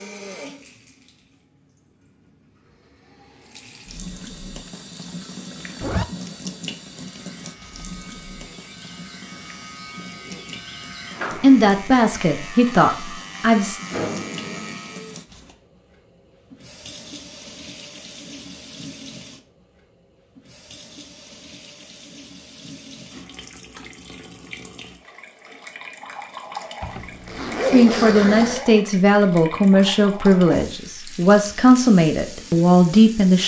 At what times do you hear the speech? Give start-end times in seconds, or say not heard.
11.4-13.8, 27.7-33.4.